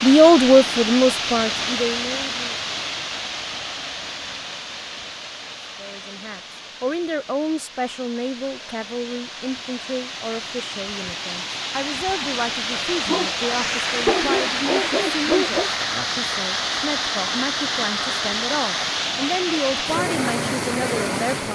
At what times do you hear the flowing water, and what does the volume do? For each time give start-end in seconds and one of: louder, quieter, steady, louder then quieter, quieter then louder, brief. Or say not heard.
0.0-21.4 quieter then louder.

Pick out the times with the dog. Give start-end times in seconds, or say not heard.
13.0-15.7.